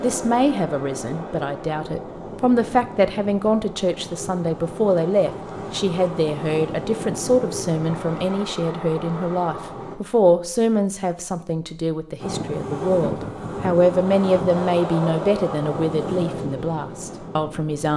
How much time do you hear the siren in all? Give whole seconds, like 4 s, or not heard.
not heard.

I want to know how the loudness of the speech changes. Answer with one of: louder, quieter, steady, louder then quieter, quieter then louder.
steady.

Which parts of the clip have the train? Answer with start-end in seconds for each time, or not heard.
0.0-10.0, 12.2-17.9.